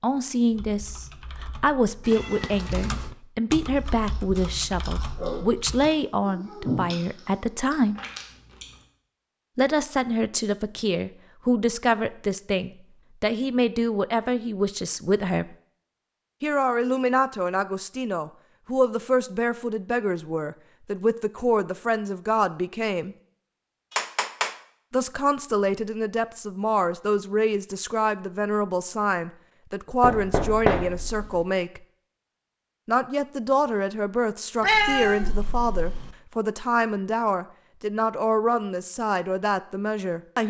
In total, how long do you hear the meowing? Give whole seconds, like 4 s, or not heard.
3 s.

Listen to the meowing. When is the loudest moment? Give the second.
35 s.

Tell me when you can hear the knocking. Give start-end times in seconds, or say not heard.
30.0-31.4.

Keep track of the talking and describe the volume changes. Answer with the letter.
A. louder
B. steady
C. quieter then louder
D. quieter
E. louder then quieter
B.